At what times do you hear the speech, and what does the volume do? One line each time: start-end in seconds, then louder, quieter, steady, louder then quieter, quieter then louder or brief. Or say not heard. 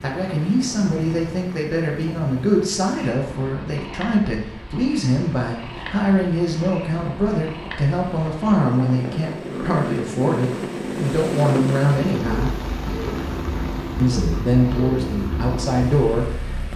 0.0-12.6 steady
13.9-16.7 brief.